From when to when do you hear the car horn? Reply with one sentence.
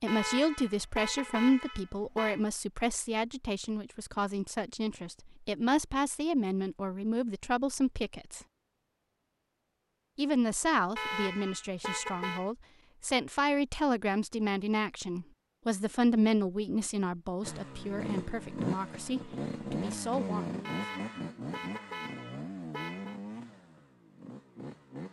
You can hear the car horn from 0.1 to 2.4 s, from 10.9 to 12.5 s and from 20.6 to 23.2 s.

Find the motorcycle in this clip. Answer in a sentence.
You can hear the motorcycle from 17.4 to 25.0 s.